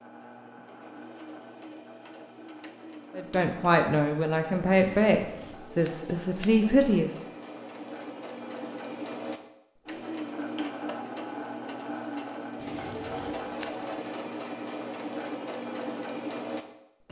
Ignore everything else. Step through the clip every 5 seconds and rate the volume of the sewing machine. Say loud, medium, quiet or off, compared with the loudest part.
medium, medium, loud, loud.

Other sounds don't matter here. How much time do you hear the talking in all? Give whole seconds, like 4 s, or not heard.
4 s.